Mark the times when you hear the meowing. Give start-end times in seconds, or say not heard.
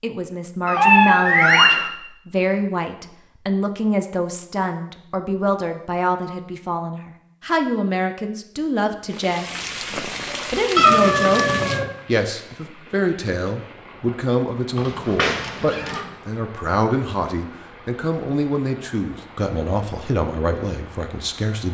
0.7-1.9, 10.8-11.8, 14.8-16.0.